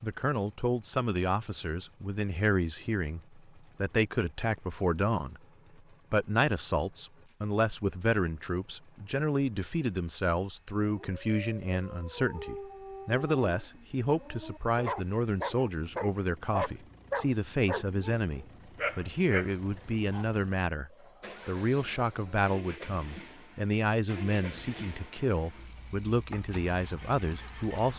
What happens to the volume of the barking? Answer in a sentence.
The volume of the barking goes up.